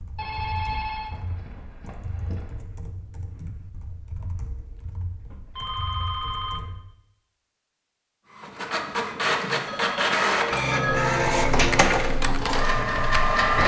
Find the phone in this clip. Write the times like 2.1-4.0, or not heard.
0.1-2.6, 5.5-6.7, 9.7-11.1.